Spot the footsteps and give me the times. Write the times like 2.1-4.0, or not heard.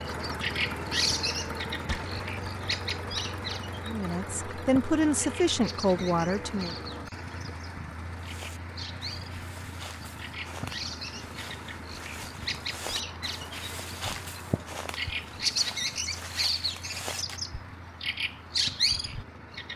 8.2-17.4.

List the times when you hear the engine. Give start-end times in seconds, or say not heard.
0.0-19.7.